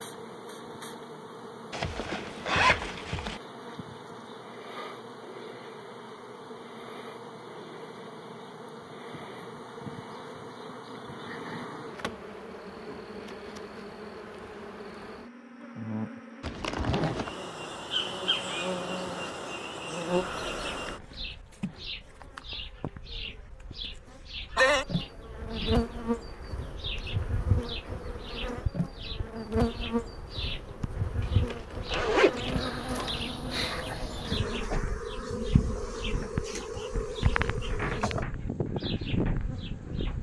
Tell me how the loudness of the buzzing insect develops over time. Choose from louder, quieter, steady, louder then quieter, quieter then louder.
louder.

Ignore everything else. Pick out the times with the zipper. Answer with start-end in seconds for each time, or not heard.
1.7-3.4, 16.4-17.4, 31.2-33.2.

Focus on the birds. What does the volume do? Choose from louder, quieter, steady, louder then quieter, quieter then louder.
louder.